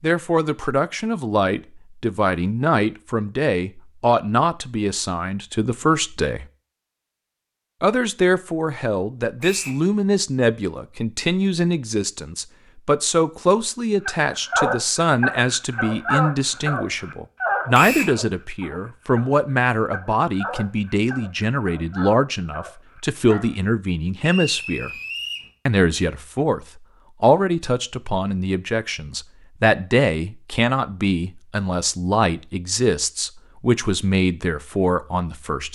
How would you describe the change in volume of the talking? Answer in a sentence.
The loudness of the talking stays about the same.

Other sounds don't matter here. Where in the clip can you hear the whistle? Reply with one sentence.
The whistle can be heard from 9.4 to 9.8 s, from 17.7 to 18.1 s and from 24.2 to 25.5 s.